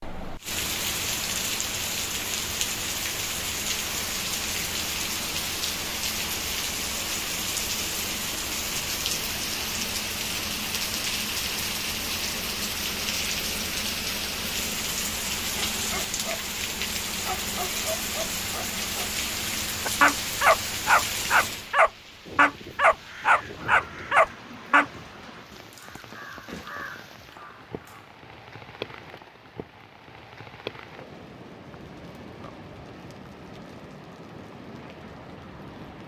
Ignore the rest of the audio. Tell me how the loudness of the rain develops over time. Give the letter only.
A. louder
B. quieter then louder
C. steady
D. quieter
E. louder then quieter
D.